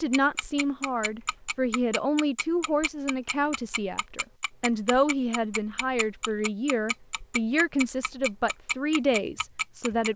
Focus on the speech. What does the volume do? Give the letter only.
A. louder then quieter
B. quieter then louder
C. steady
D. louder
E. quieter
C.